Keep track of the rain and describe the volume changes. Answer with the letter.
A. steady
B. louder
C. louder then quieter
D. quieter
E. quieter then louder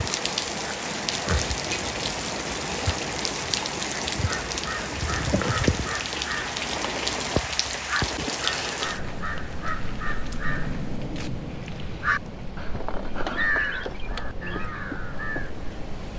D.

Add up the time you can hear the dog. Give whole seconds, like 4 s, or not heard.
not heard.